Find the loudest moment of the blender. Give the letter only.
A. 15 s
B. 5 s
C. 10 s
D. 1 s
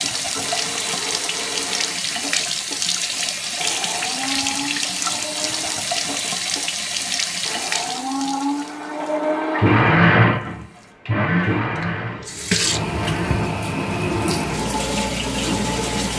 C.